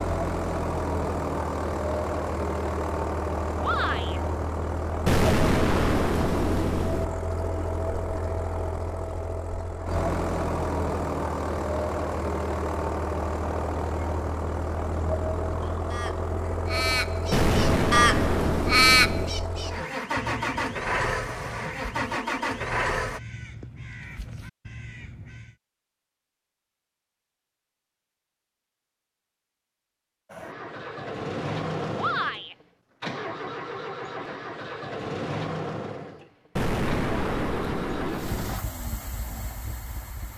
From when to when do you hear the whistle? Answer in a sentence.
You can't hear the whistle here.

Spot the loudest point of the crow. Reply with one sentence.
The volume of the crow peaks at 19 seconds.